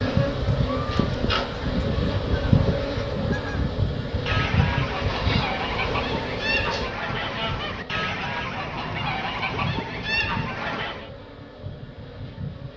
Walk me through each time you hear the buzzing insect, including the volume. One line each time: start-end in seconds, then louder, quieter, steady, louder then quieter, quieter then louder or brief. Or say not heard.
0.0-12.7 quieter.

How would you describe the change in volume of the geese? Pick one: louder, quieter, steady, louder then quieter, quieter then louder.
steady.